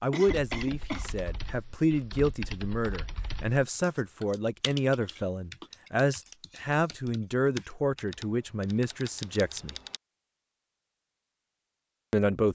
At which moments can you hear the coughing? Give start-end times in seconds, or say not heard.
0.1-1.1.